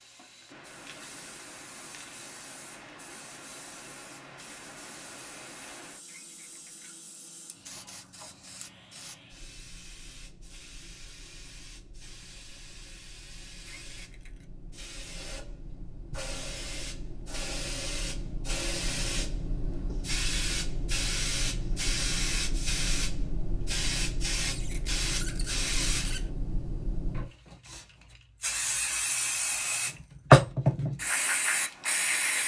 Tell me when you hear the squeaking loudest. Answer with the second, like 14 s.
26 s.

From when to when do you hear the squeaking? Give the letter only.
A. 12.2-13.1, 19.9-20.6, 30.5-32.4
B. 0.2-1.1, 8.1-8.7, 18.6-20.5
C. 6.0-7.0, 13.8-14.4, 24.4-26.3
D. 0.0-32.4
C.